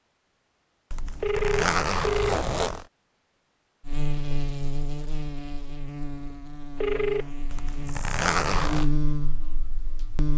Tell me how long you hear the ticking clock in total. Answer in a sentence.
You can't hear the ticking clock here.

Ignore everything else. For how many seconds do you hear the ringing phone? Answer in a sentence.
You can hear the ringing phone for 2 seconds altogether.